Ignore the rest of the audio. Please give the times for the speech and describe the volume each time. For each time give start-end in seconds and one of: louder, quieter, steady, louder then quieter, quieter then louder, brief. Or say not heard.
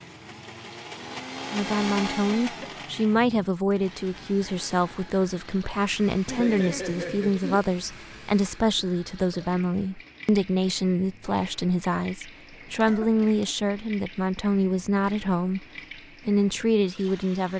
1.5-15.7 steady
16.2-17.5 brief.